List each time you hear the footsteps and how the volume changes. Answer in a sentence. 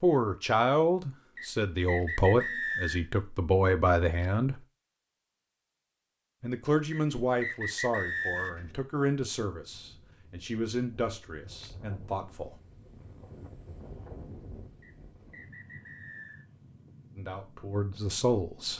You can't hear the footsteps here.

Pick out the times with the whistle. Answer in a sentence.
The whistle can be heard from 1.4 to 3.1 s, from 6.9 to 8.7 s and from 14.8 to 16.4 s.